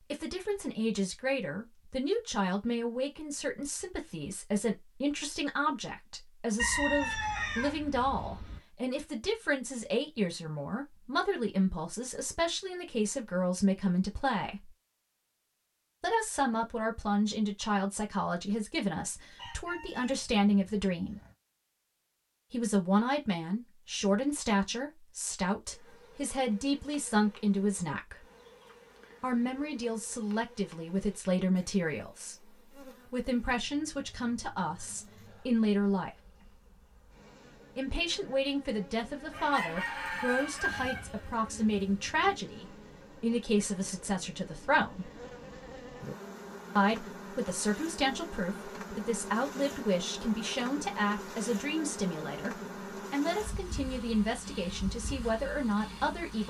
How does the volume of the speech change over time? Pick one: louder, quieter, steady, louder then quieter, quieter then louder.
steady.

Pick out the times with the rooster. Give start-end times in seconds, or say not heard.
6.5-8.6, 19.4-21.4, 39.3-42.2.